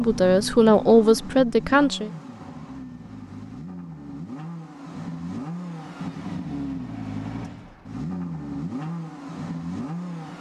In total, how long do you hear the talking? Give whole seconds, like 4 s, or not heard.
2 s.